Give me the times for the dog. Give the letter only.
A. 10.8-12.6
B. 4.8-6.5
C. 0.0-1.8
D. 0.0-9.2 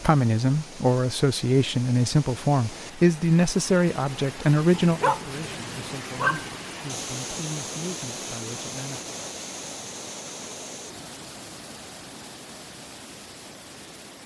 B.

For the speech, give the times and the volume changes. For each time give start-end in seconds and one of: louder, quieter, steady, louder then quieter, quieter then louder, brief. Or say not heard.
0.0-9.2 quieter.